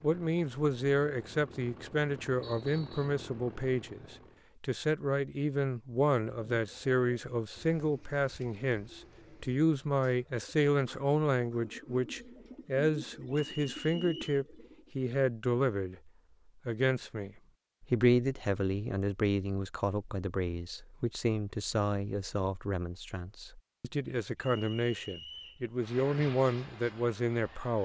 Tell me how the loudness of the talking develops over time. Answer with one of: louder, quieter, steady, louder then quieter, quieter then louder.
steady.